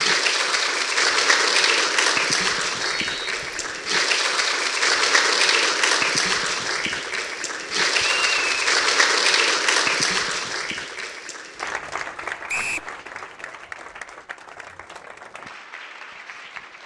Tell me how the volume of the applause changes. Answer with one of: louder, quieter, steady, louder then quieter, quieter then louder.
quieter.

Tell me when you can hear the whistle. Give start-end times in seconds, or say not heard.
2.8-3.7, 8.0-8.8, 12.4-12.9.